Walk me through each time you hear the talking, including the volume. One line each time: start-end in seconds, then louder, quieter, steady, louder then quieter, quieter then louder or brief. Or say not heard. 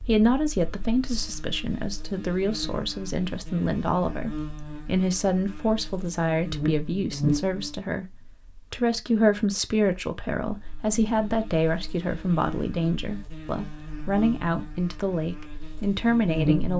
0.0-16.7 steady.